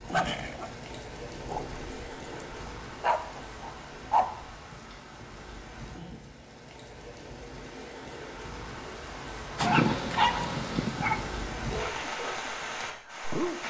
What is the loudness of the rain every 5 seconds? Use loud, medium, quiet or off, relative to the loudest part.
medium, medium, loud.